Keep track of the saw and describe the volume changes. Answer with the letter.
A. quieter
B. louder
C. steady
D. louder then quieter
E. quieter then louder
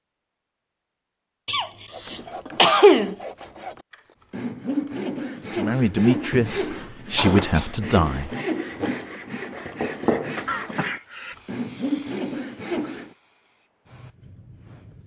B.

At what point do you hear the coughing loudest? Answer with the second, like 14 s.
3 s.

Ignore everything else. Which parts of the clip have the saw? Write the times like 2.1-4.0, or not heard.
1.9-13.2.